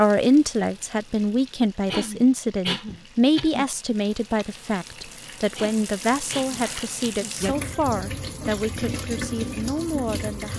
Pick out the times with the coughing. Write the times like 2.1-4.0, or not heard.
1.9-3.6, 5.5-7.3.